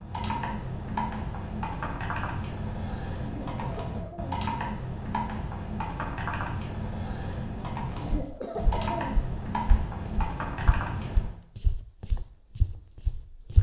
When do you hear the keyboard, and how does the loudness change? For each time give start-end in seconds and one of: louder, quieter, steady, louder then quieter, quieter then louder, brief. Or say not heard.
0.0-11.3 steady.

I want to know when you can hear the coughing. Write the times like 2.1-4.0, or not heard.
3.2-4.5, 8.0-9.2.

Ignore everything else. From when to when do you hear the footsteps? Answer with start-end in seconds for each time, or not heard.
8.1-13.5.